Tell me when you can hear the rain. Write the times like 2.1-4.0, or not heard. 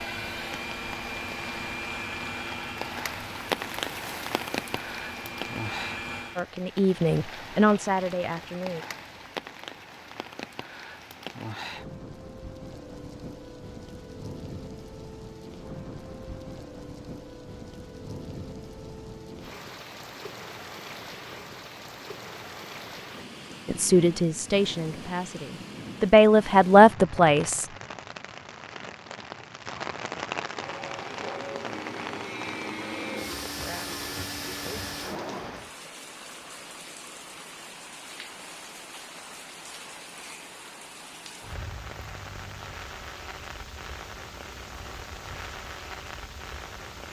0.0-47.0.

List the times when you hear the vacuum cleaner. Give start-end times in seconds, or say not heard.
0.0-6.5, 30.6-35.6.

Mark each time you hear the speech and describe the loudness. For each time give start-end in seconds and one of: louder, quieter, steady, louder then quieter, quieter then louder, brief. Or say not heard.
6.3-8.8 brief
23.6-27.6 quieter then louder.